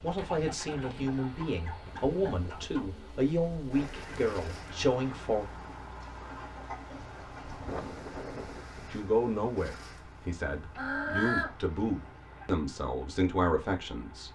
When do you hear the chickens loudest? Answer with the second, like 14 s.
11 s.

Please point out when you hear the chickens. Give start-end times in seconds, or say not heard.
0.1-2.9, 6.0-7.8, 10.8-12.4.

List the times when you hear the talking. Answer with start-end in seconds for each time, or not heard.
0.0-5.5, 8.9-14.3.